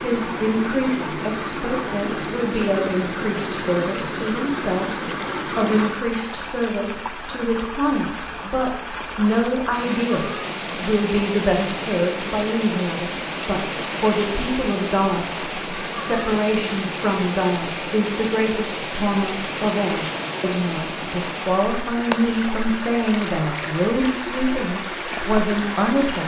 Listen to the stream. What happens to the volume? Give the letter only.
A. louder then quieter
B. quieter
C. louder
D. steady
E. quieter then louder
D.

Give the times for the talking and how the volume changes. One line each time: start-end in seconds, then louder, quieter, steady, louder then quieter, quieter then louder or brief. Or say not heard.
0.0-26.2 steady.